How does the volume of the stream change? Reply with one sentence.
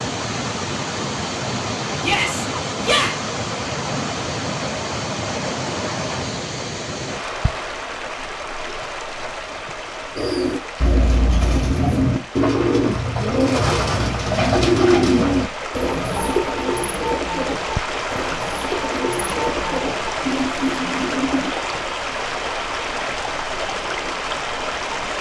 The loudness of the stream goes down, then up.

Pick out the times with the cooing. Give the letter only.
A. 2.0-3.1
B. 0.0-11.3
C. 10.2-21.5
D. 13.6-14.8
C.